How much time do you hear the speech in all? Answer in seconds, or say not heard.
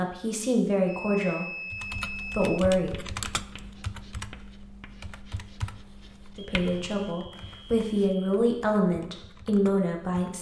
7 s.